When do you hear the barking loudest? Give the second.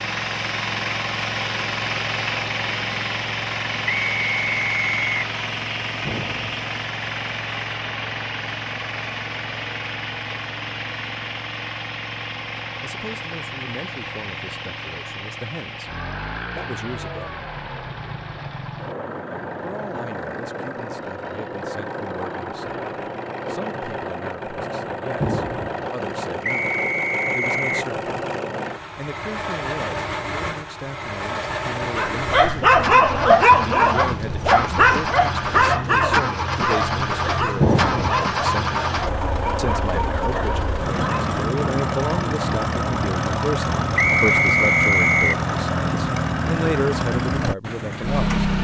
33 s.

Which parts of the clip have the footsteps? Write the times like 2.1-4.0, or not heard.
not heard.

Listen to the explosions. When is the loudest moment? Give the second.
38 s.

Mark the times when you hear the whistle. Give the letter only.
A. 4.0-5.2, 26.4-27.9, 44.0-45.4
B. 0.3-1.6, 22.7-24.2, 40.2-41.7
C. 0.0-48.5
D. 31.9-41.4
A.